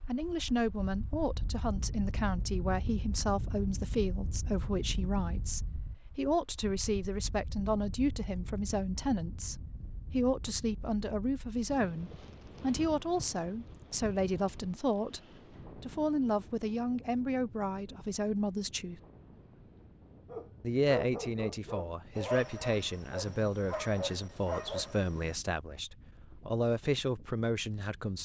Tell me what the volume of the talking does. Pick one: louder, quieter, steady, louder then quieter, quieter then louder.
steady.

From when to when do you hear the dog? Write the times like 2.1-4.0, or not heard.
20.3-25.4.